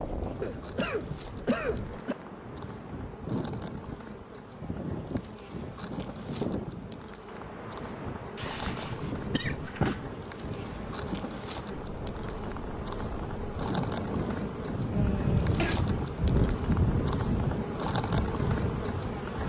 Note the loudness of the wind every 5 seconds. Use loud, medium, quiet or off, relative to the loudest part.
medium, medium, medium, loud.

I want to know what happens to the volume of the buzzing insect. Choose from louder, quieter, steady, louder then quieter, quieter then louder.
louder.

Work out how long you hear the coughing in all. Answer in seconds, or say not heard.
4 s.